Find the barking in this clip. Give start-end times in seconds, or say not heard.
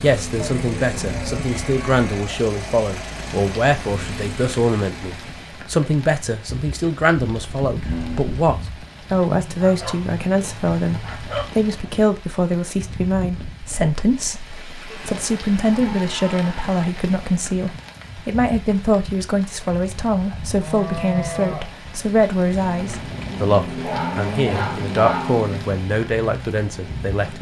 9.6-11.4, 23.8-25.4.